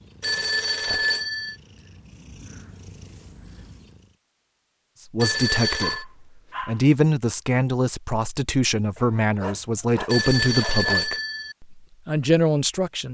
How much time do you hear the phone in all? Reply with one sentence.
The phone can be heard for 4 seconds in total.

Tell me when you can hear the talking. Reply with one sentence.
The talking can be heard from 5.1 to 13.0 s.